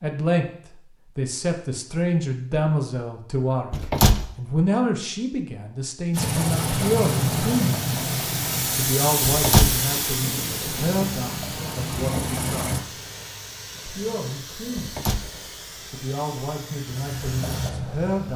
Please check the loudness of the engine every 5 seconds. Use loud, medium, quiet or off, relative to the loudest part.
off, loud, loud, medium.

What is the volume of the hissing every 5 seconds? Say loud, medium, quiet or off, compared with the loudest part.
off, loud, medium, medium.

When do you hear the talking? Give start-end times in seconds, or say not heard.
0.0-7.8, 8.8-12.8, 13.8-15.0, 15.9-18.3.